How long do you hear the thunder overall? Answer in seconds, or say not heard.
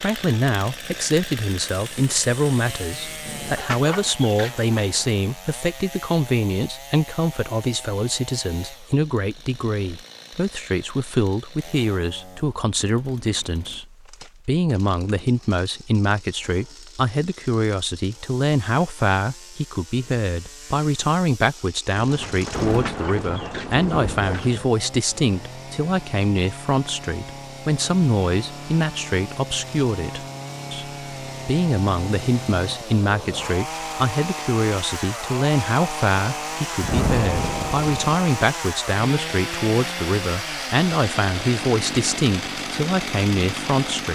6 s.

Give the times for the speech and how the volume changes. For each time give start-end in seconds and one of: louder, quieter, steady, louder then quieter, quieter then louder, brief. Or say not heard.
0.0-44.0 steady.